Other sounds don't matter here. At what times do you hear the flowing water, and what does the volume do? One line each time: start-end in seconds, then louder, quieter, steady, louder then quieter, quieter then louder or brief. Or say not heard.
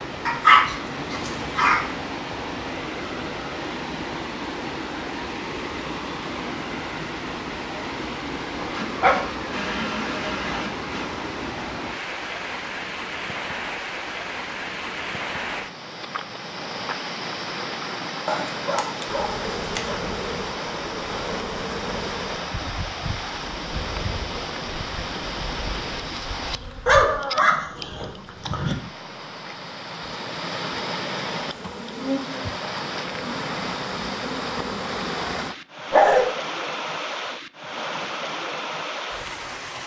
0.0-39.8 steady.